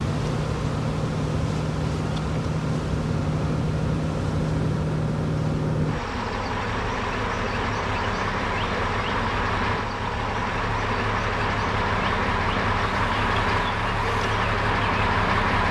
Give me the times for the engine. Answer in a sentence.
You can hear the engine from 0.0 to 15.6 s.